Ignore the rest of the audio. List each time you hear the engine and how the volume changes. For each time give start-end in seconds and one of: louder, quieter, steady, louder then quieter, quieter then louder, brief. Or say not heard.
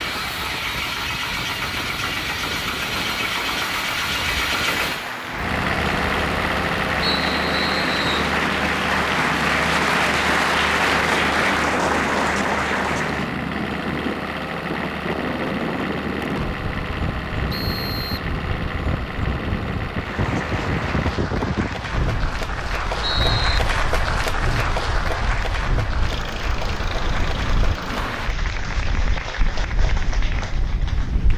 0.0-28.3 quieter.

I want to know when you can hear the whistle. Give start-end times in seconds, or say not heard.
7.0-8.3, 17.5-18.3, 22.1-23.6.